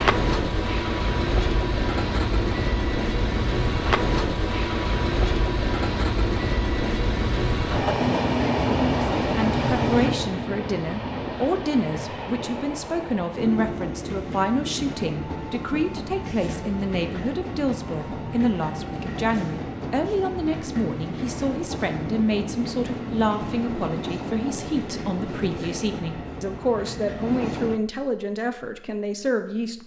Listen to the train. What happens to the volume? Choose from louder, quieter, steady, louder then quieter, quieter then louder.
quieter.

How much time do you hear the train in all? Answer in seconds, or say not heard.
28 s.